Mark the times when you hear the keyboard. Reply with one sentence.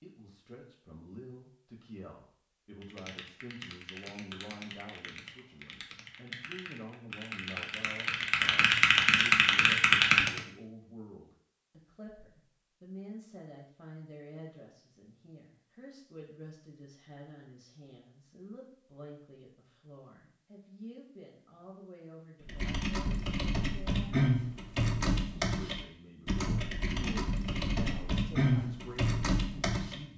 The keyboard can be heard from 2.8 to 10.4 s and from 22.4 to 30.0 s.